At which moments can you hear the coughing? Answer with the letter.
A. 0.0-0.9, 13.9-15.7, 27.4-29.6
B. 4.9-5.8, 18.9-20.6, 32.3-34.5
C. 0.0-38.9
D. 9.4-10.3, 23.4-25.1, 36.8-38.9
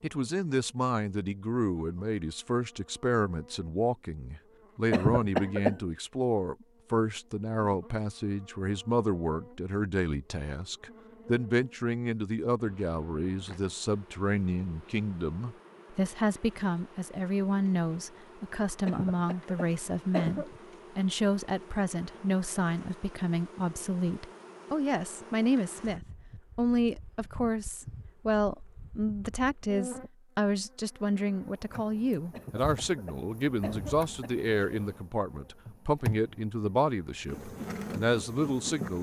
B.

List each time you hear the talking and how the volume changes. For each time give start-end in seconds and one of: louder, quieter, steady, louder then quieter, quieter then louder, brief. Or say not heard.
0.0-38.9 steady.